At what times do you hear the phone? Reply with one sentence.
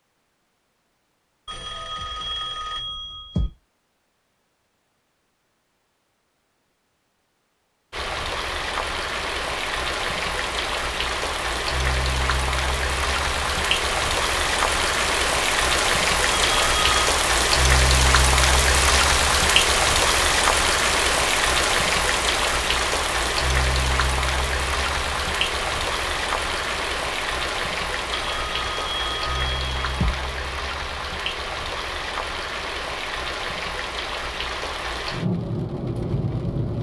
You can hear the phone from 1.4 to 3.5 s, from 16.3 to 17.0 s and from 28.1 to 30.1 s.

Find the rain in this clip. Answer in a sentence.
The rain can be heard from 7.9 to 36.7 s.